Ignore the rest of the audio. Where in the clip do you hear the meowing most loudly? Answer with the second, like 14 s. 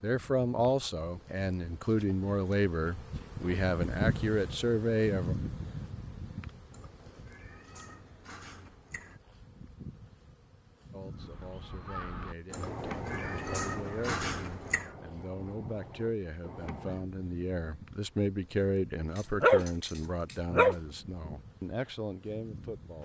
14 s.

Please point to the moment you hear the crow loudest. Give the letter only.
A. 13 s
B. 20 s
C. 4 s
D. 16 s
A.